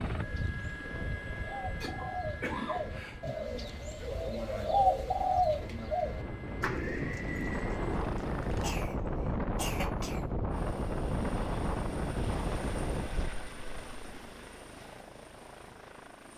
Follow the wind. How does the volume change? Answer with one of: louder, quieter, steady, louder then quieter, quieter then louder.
quieter then louder.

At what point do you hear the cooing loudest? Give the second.
5 s.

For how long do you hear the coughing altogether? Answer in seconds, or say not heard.
3 s.